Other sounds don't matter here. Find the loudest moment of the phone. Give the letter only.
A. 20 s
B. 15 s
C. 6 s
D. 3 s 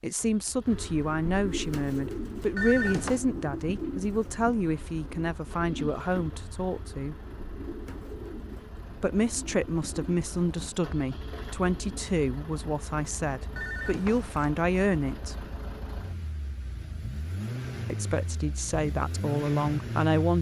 D.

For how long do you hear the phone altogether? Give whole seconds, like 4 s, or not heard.
2 s.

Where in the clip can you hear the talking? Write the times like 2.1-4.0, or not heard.
0.0-7.2, 9.0-15.4, 17.9-20.3.